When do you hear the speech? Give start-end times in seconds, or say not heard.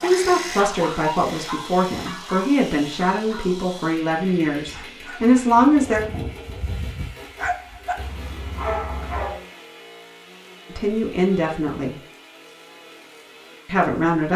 0.0-6.0, 10.7-11.9, 13.7-14.3.